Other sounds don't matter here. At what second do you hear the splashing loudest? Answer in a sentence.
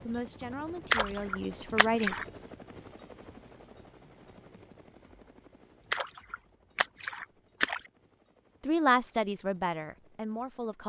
The loudest moment of the splashing is at 1 second.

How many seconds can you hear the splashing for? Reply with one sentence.
The splashing can be heard for 3 seconds in total.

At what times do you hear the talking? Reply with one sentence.
The talking can be heard from 0.1 to 2.1 s and from 8.6 to 10.8 s.